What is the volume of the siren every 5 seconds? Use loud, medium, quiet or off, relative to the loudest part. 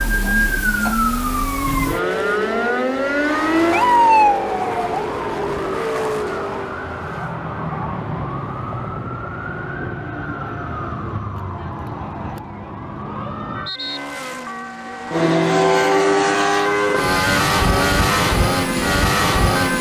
loud, medium, medium, medium.